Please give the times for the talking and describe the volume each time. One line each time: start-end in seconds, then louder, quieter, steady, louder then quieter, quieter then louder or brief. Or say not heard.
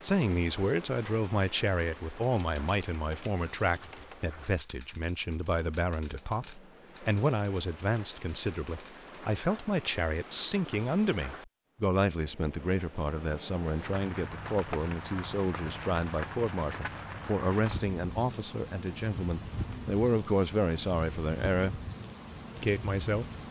0.0-21.8 steady
22.6-23.2 brief.